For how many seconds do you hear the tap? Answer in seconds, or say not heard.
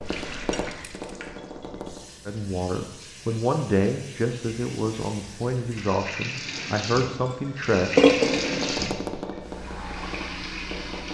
11 s.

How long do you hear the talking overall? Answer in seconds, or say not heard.
6 s.